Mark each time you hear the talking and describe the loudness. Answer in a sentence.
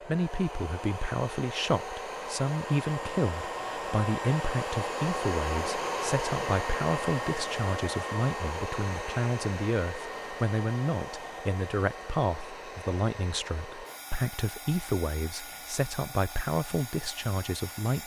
You can hear the talking from 0.1 to 18.0 s, at a steady volume.